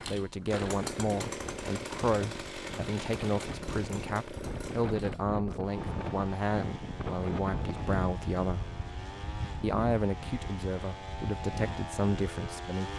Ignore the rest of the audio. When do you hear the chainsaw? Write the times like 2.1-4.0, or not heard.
0.0-12.9.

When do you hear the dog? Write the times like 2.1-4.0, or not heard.
not heard.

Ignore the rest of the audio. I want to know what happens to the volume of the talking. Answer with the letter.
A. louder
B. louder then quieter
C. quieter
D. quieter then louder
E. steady
E.